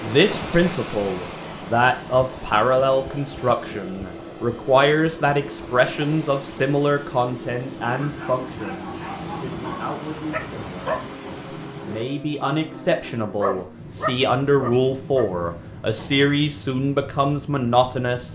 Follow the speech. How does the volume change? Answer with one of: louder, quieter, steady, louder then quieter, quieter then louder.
quieter then louder.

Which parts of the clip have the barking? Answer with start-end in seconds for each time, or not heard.
7.8-16.3.